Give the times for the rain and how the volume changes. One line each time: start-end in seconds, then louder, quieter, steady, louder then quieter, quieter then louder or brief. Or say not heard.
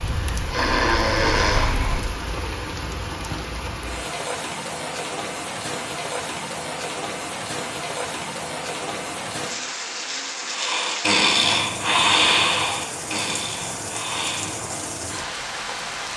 0.0-16.1 steady.